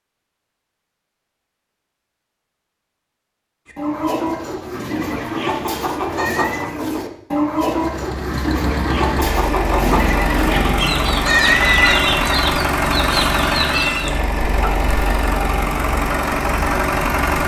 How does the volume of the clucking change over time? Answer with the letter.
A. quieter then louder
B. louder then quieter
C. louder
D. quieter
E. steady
E.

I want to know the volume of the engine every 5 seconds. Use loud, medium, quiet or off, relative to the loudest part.
off, medium, loud, loud.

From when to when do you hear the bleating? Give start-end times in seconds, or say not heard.
4.7-6.7, 9.8-12.0.